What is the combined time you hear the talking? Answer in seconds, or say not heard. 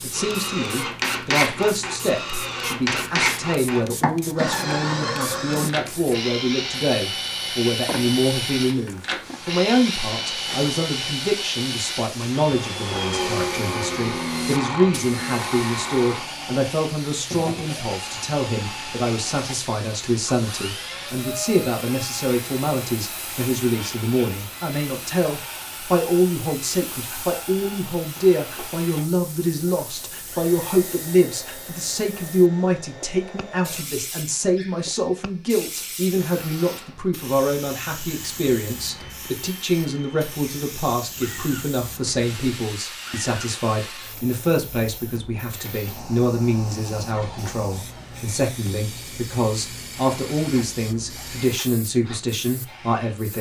53 s.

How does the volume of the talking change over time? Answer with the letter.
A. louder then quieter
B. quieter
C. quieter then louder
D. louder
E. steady
E.